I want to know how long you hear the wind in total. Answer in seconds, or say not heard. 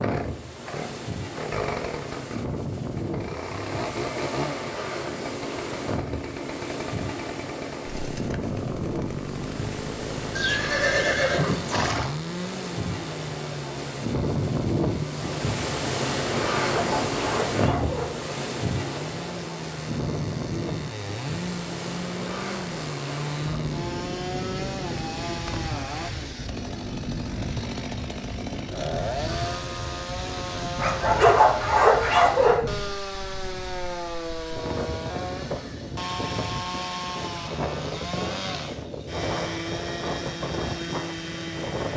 42 s.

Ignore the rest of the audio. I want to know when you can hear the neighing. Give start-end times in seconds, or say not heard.
10.3-12.2.